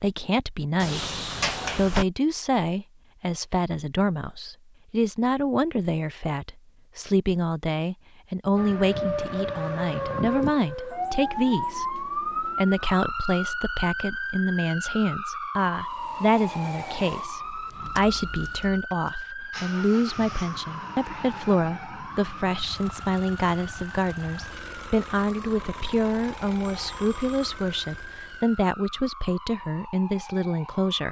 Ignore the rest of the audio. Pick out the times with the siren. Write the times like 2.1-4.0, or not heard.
8.6-31.0.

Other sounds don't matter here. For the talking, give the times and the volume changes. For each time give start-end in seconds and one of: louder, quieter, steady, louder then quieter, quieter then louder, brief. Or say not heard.
0.0-31.0 steady.